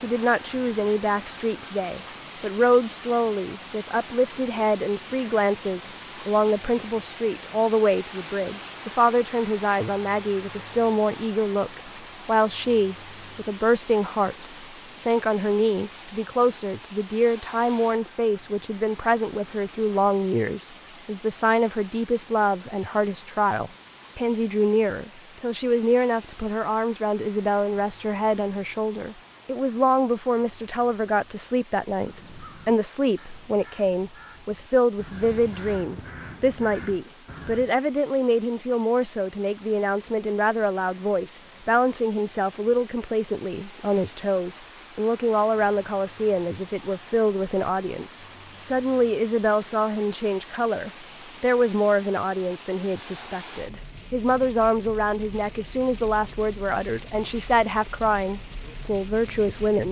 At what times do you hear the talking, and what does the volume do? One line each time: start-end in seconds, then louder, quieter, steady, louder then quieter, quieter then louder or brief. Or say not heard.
0.0-59.8 steady.